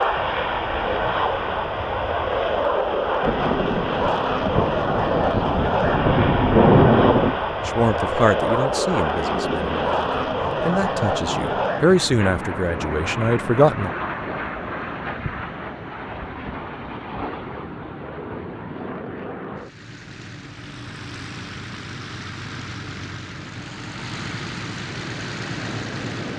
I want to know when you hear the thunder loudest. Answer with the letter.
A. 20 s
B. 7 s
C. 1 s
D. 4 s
B.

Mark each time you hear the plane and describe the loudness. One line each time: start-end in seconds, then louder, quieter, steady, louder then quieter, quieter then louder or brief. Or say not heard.
0.0-26.3 quieter.